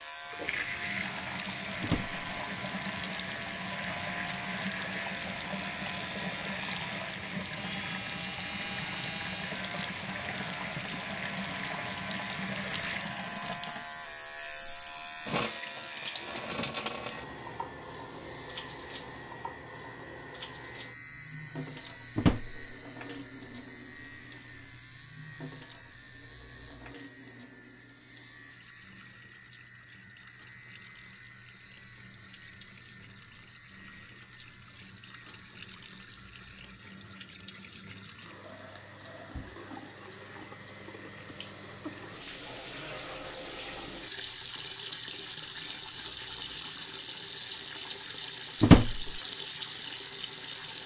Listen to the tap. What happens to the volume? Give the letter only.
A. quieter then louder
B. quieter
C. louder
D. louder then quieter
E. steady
A.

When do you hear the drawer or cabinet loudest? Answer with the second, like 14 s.
49 s.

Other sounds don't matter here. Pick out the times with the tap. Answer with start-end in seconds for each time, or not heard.
0.0-50.8.